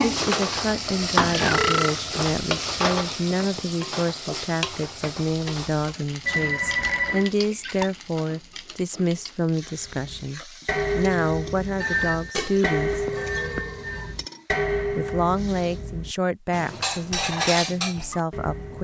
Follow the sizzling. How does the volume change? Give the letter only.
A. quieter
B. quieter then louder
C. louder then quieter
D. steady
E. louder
A.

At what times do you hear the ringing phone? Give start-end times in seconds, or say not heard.
6.2-7.3, 11.8-14.2.